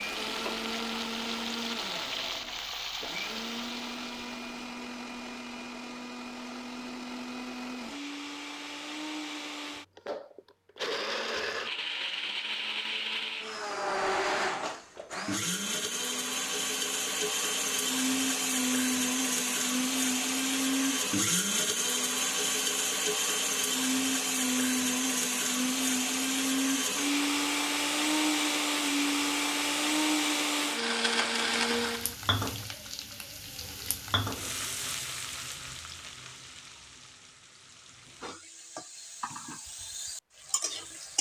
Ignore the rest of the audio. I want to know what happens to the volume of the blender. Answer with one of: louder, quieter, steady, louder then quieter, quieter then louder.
louder.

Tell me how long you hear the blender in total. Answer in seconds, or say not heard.
32 s.